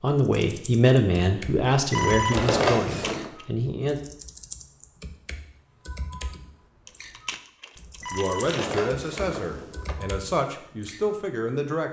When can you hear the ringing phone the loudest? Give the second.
3 s.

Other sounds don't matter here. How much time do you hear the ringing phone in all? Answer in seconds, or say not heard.
3 s.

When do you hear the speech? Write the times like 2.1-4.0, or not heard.
0.0-4.0, 8.1-11.8.